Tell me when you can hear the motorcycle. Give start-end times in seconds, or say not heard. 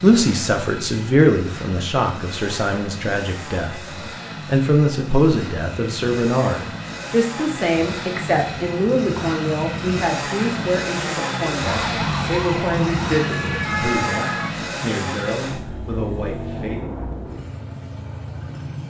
0.0-18.8.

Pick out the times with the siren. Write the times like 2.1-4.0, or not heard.
11.7-14.6.